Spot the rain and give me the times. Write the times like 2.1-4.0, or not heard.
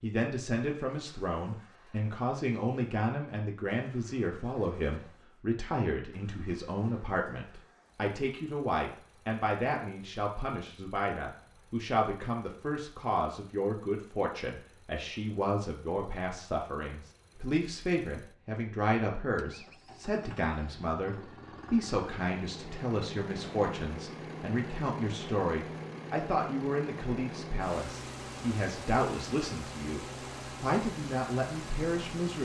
not heard.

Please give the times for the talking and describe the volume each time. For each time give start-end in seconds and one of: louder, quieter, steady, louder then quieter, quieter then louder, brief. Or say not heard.
0.0-32.4 steady.